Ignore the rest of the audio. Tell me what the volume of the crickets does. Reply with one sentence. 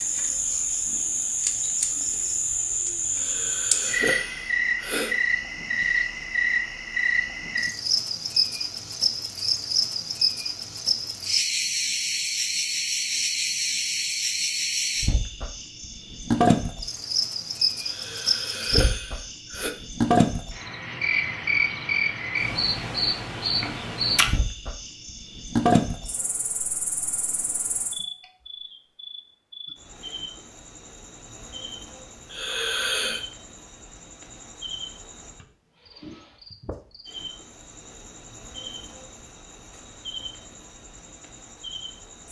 The volume of the crickets goes down.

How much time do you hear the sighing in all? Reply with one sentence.
The sighing can be heard for 5 seconds in total.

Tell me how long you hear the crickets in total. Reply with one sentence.
The crickets can be heard for 42 seconds in total.